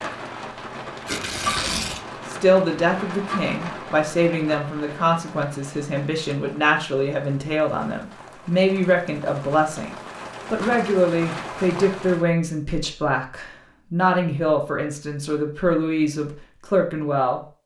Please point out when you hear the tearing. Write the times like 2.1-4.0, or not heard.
1.1-2.0.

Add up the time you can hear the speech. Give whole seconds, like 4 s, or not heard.
15 s.